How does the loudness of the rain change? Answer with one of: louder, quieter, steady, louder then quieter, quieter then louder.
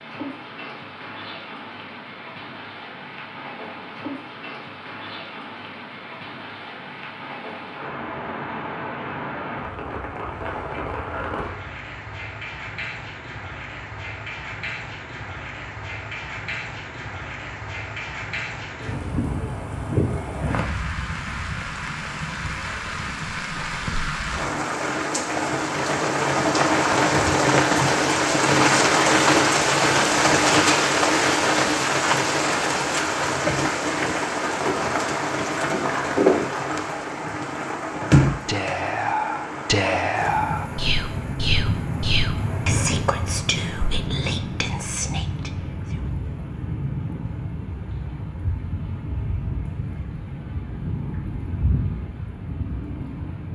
louder then quieter.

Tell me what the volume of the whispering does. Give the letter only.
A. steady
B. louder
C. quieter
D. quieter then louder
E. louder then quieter
C.